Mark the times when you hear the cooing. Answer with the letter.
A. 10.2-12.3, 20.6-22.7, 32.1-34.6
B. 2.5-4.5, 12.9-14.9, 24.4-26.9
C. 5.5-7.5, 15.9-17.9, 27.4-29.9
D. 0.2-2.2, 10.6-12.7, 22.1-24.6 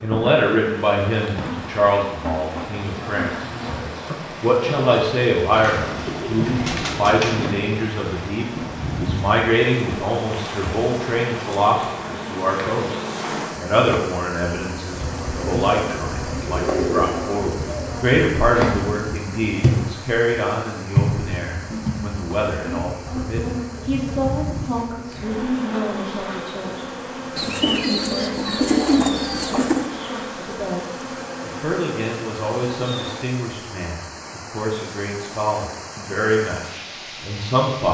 C.